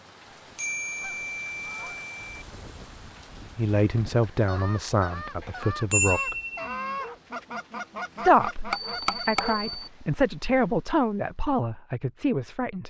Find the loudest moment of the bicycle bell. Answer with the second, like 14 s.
6 s.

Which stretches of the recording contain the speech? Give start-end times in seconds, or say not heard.
3.5-6.3, 8.2-12.8.